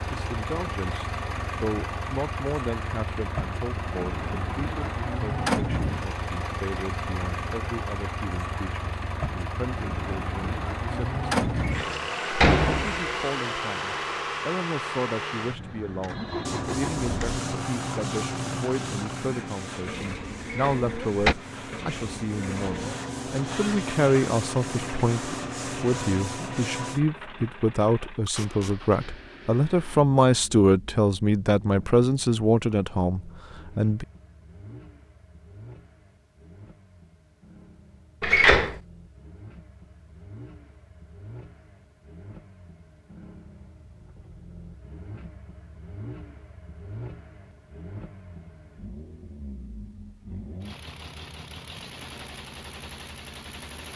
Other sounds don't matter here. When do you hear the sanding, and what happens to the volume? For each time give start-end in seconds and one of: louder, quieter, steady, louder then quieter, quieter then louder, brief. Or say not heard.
16.4-27.0 quieter then louder.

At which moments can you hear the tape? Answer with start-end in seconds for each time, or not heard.
28.2-28.8.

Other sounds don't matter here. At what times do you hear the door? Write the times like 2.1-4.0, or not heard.
11.6-13.1, 20.4-21.4, 38.2-38.7.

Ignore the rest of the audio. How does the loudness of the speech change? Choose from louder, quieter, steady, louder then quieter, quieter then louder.
louder.